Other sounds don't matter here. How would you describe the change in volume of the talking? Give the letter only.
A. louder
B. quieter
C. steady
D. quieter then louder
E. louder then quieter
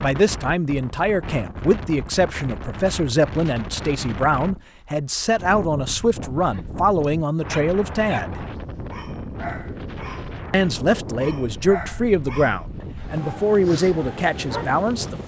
C.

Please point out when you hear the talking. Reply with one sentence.
You can hear the talking from 0.0 to 8.4 s and from 10.5 to 15.2 s.